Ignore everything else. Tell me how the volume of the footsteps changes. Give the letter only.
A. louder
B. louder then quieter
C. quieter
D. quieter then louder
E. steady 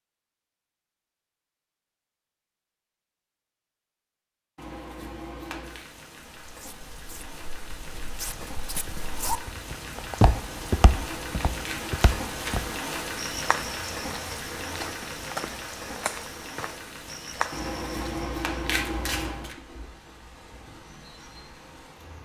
B.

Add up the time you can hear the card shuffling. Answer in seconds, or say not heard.
6 s.